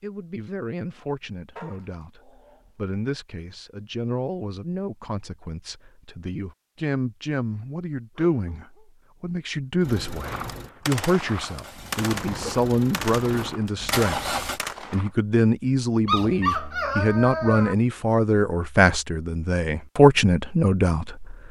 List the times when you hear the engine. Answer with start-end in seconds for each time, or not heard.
9.8-14.6.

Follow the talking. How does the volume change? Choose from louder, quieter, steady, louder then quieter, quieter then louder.
louder.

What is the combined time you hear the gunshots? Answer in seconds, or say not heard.
5 s.